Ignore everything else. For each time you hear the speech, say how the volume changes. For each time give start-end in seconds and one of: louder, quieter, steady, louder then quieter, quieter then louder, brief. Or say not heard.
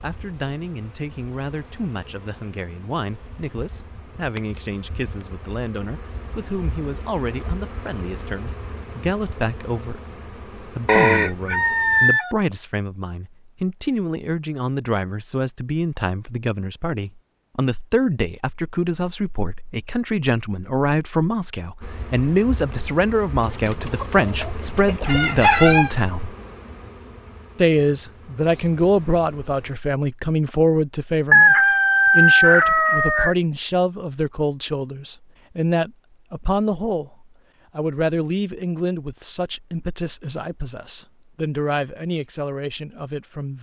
0.0-26.4 louder
27.6-43.5 quieter.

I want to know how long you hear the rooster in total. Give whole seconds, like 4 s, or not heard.
6 s.